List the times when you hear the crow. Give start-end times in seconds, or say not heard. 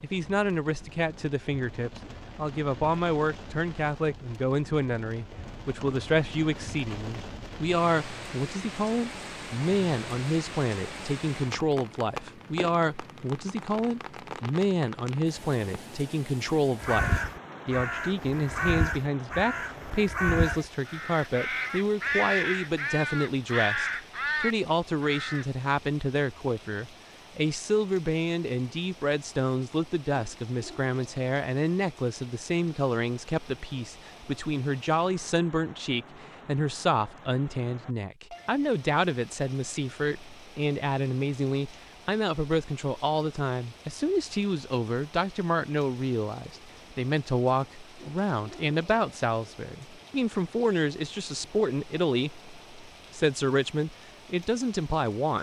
16.8-25.4.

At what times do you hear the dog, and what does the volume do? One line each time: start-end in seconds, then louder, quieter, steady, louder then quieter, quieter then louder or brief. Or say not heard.
not heard.